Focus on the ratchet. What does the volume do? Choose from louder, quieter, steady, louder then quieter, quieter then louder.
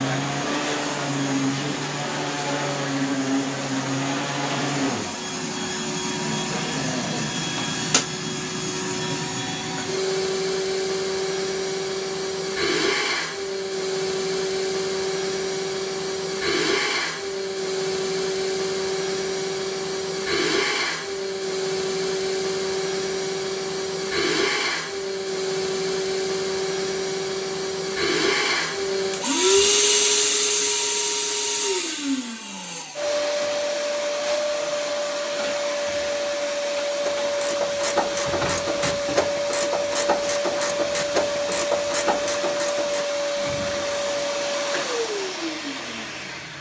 steady.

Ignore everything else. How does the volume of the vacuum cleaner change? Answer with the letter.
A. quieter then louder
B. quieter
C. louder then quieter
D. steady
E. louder
D.